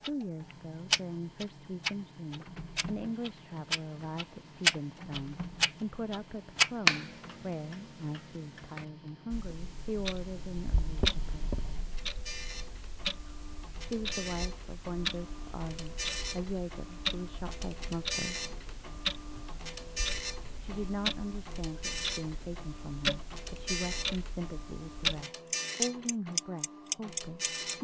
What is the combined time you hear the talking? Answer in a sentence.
You can hear the talking for 23 seconds altogether.